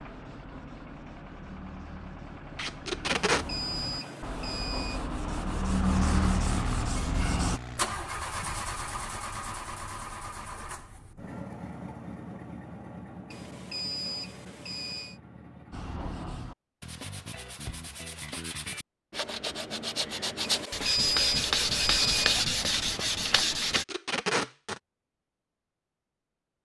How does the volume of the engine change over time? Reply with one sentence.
The volume of the engine goes up, then down.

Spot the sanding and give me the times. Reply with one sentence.
You can hear the sanding from 0.0 to 7.6 s and from 15.7 to 23.9 s.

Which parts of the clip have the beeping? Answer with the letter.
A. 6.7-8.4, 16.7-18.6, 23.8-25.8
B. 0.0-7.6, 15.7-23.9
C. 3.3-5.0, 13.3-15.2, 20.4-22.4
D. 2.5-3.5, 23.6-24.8
C.